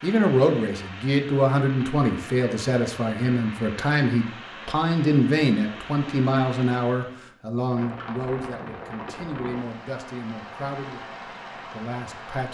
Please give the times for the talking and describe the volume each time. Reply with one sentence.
You can hear the talking from 0.0 to 12.4 s, getting quieter.